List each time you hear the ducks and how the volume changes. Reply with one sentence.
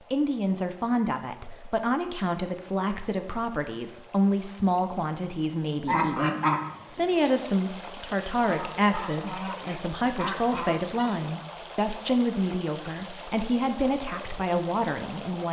You can hear the ducks from 5.8 to 11.2 s, getting quieter then louder.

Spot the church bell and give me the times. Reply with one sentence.
You can't hear the church bell here.